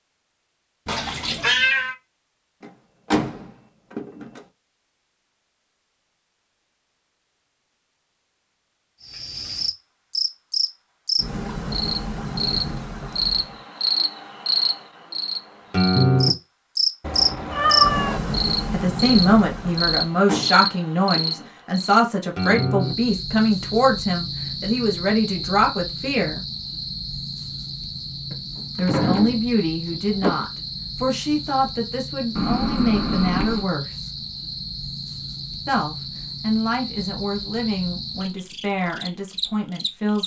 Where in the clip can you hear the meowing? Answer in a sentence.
The meowing can be heard from 0.8 to 1.9 s, from 17.0 to 18.2 s and from 32.4 to 33.6 s.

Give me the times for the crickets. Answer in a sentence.
You can hear the crickets from 9.0 to 40.2 s.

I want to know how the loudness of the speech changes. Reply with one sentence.
The loudness of the speech goes down.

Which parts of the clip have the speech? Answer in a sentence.
You can hear the speech from 18.7 to 26.4 s, from 28.8 to 34.2 s and from 35.6 to 40.2 s.